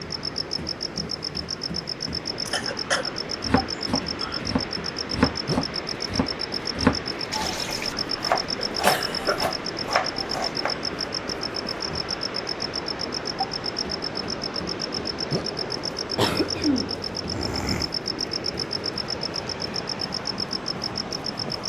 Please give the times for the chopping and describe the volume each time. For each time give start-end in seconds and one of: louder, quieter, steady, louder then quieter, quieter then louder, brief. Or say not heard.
3.4-10.8 louder then quieter.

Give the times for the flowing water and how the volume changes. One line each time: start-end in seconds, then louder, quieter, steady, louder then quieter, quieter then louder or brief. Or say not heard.
0.0-21.6 steady.